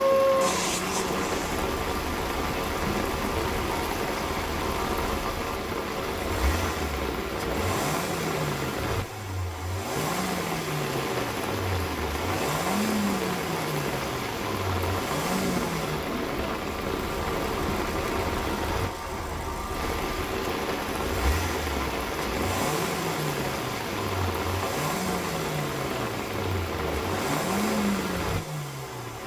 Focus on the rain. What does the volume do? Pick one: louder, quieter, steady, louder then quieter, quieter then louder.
steady.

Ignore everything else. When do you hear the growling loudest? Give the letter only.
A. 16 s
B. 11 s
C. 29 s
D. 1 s
D.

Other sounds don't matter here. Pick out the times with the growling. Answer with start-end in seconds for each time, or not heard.
0.4-1.7, 15.2-16.6.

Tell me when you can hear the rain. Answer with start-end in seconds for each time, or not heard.
0.0-29.2.